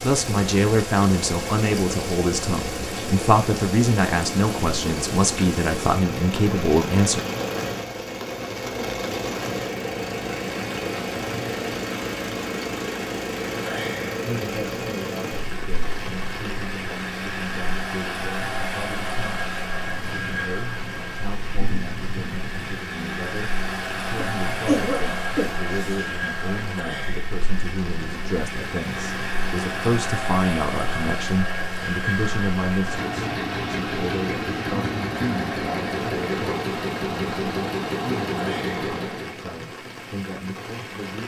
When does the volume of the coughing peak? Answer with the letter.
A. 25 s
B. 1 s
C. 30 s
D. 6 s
A.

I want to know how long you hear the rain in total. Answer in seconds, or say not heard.
41 s.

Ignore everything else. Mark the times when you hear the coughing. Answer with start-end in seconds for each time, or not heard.
24.1-26.1.